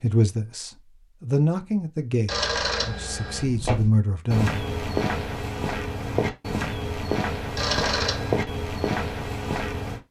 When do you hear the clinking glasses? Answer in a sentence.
You can't hear the clinking glasses here.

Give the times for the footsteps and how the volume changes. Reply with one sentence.
The footsteps can be heard from 3.4 to 10.0 s, at a steady volume.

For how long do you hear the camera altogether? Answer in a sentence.
You can hear the camera for 2 seconds altogether.